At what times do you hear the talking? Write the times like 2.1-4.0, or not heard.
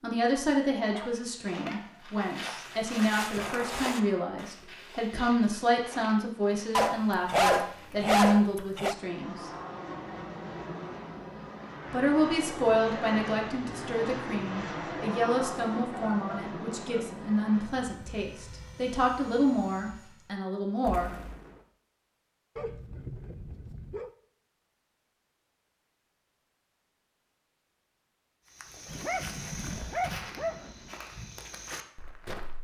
0.0-9.5, 11.9-21.1.